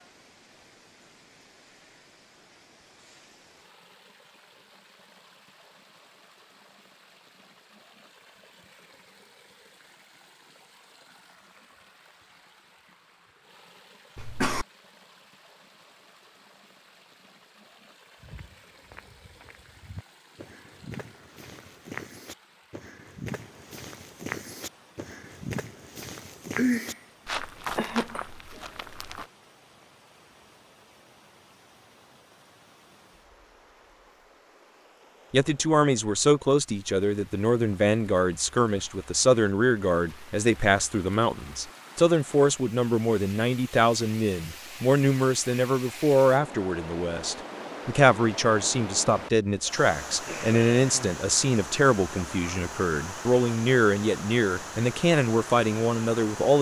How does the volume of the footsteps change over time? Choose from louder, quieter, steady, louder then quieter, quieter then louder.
louder.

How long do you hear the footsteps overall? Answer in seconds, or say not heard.
11 s.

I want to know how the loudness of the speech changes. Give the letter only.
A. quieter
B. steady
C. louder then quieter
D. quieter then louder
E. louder
B.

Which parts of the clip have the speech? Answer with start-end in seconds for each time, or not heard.
35.3-56.5.